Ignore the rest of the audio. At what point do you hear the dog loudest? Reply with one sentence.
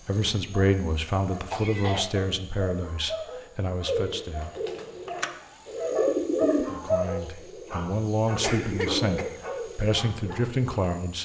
The loudest moment of the dog is at 7 seconds.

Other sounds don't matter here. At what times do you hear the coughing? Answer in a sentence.
You can hear the coughing from 1.5 to 2.1 s and from 8.4 to 9.4 s.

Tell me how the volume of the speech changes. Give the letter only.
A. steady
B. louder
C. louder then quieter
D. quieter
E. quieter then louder
E.